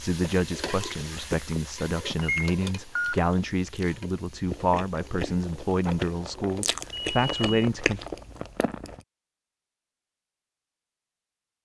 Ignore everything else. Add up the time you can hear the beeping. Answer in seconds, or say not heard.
2 s.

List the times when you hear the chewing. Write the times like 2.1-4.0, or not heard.
0.1-9.0.